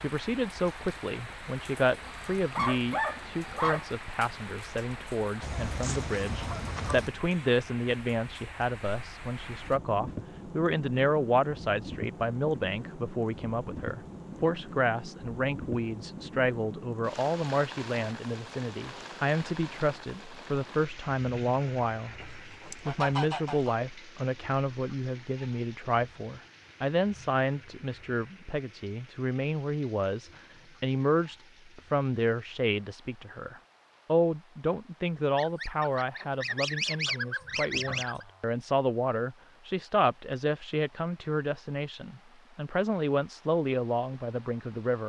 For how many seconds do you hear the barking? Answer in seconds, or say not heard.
2 s.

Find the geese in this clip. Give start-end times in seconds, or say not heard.
5.4-7.2, 22.2-23.8, 35.4-38.2.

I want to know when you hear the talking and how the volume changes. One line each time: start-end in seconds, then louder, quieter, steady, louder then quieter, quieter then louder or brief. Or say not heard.
0.0-45.0 steady.